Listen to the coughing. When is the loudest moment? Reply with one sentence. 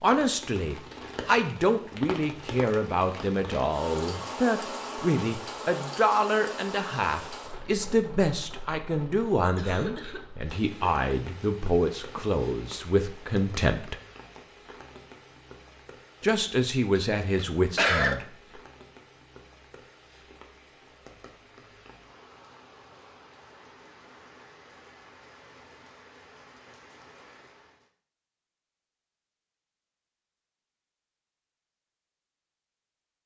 The loudest moment of the coughing is at 18 seconds.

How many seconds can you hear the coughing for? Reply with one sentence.
You can hear the coughing for 2 seconds altogether.